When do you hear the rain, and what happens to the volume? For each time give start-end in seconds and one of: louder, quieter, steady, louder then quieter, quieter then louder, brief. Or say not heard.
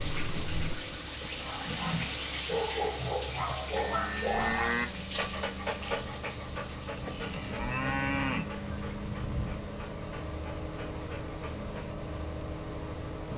0.0-13.3 quieter.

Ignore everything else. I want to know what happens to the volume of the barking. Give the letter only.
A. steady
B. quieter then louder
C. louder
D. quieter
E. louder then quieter
D.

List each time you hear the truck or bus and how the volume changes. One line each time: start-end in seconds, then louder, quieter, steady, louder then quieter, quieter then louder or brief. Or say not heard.
0.0-13.3 louder.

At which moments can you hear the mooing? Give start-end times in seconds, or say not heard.
3.7-4.8, 7.0-9.6.